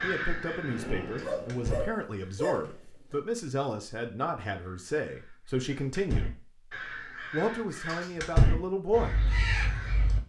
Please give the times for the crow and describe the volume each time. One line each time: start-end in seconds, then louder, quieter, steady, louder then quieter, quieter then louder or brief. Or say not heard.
0.0-2.5 brief
4.5-10.2 louder then quieter.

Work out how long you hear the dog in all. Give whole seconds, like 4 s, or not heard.
2 s.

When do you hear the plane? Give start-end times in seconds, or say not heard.
0.1-2.0.